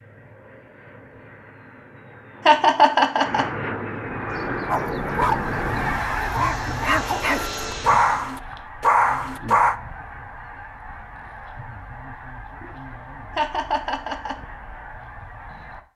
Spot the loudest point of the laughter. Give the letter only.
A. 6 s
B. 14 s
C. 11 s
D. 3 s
D.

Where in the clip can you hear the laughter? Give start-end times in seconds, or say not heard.
2.5-3.5, 13.3-14.3.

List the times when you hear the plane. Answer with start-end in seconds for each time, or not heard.
0.0-8.3.